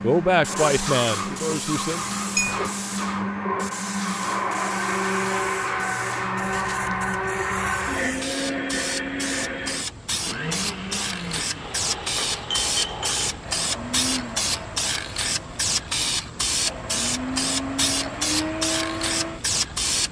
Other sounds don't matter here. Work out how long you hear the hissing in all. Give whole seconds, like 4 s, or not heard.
20 s.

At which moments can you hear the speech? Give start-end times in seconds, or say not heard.
0.0-2.0.